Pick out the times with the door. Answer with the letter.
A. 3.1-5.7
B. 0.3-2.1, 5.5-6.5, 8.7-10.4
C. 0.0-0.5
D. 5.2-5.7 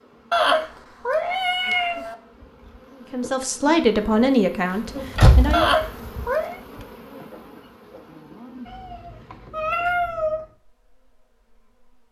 D.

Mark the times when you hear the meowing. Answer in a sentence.
The meowing can be heard from 0.3 to 2.1 s, from 5.5 to 6.5 s and from 8.7 to 10.4 s.